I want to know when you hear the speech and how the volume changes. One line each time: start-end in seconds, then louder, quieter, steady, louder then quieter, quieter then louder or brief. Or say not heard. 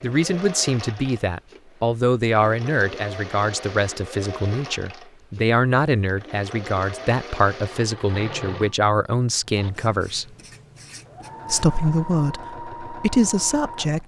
0.0-10.3 steady
11.5-14.0 brief.